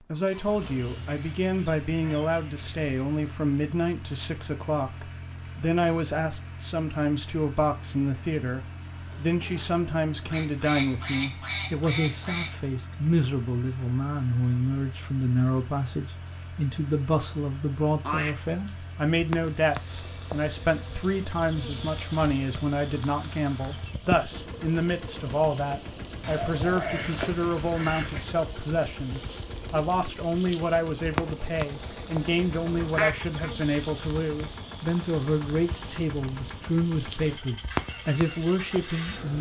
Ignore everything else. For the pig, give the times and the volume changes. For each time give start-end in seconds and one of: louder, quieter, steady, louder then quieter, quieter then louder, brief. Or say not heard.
not heard.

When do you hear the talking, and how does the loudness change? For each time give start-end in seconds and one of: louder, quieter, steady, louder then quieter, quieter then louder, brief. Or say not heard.
0.0-39.3 steady.